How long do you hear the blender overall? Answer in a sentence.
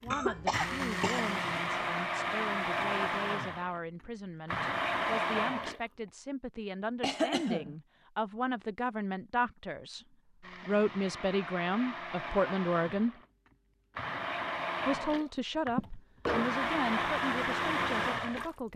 The blender can be heard for 14 seconds in total.